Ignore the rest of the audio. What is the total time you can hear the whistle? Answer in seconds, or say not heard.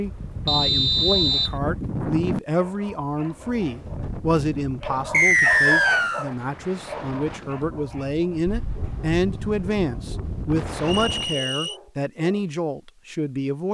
3 s.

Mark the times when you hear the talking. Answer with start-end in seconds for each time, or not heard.
0.0-13.6.